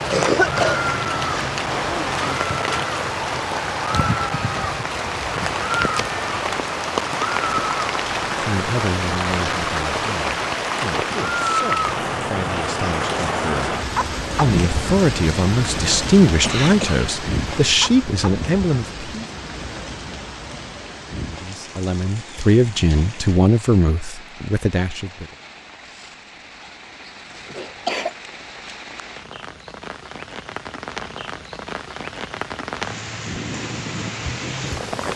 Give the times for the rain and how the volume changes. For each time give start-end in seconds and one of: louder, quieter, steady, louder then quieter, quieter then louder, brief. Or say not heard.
0.0-35.1 quieter then louder.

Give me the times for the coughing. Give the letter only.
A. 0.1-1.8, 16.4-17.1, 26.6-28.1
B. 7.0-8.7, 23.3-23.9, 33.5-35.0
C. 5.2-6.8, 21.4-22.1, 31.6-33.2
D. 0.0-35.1
A.